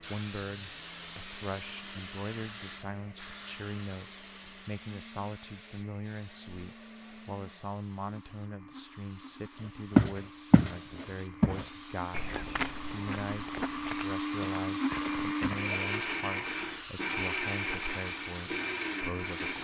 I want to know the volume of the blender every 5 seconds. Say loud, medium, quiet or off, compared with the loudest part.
quiet, quiet, loud, loud.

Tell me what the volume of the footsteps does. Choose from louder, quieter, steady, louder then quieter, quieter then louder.
quieter.